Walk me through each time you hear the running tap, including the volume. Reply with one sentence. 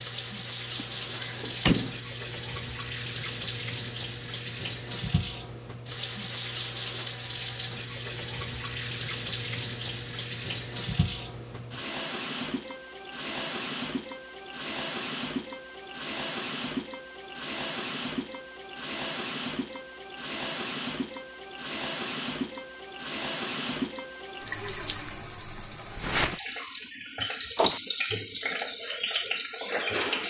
The running tap can be heard from 0.0 to 30.2 s, at a steady volume.